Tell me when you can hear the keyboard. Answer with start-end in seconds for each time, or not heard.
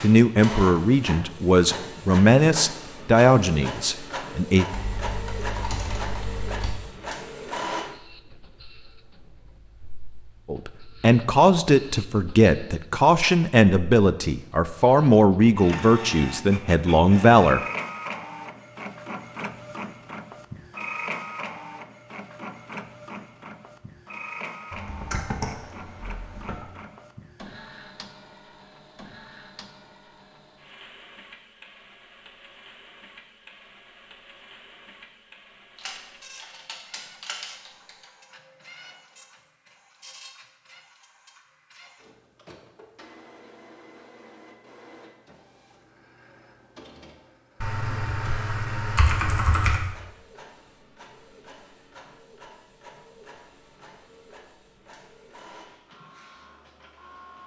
4.7-6.8, 24.7-26.7, 35.8-38.0, 47.6-49.8.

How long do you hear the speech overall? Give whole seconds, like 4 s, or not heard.
12 s.